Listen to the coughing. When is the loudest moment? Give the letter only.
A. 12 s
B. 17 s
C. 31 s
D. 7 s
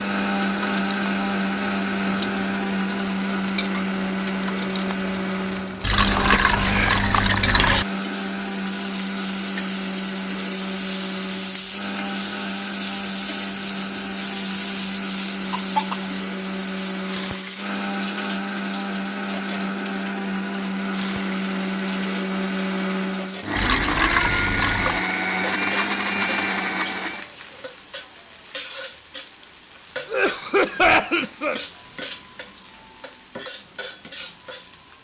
C.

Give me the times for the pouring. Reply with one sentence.
The pouring can be heard from 5.8 to 7.8 s and from 23.6 to 25.1 s.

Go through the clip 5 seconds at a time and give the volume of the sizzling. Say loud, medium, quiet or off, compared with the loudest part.
medium, loud, loud, loud, medium, medium, medium.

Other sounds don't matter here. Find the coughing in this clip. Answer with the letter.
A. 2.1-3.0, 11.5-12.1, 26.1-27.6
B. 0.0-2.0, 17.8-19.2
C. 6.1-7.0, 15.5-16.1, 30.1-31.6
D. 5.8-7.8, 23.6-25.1
C.